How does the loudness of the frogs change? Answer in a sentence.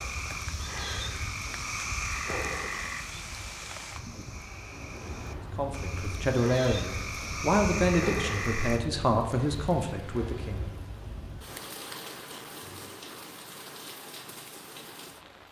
The volume of the frogs goes down, then up.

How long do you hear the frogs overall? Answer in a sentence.
The frogs can be heard for 9 seconds in total.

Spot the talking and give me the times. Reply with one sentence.
You can hear the talking from 5.5 to 10.7 s.